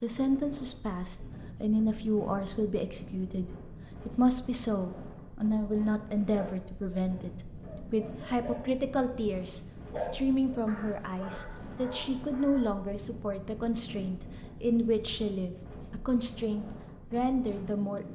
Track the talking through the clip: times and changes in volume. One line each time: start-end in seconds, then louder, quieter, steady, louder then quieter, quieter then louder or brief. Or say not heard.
0.0-18.1 steady.